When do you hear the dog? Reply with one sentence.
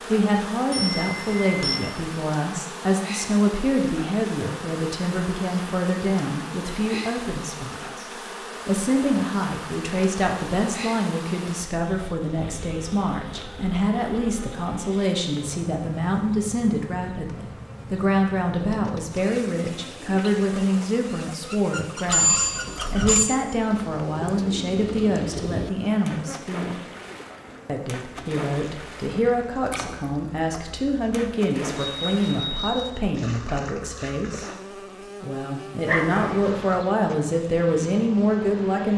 The dog can be heard from 35.9 to 36.9 s.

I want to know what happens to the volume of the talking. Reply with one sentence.
The loudness of the talking stays about the same.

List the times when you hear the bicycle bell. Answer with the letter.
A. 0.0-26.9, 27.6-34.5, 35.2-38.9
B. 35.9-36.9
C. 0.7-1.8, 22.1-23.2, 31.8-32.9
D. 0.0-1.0
C.